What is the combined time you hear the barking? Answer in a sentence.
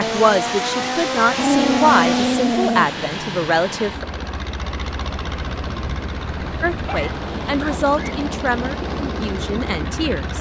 You can hear the barking for 3 seconds altogether.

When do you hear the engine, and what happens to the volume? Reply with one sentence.
You can hear the engine from 0.0 to 10.3 s, getting quieter.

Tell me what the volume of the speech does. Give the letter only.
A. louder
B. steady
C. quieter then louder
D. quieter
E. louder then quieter
D.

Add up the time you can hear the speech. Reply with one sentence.
The speech can be heard for 8 seconds in total.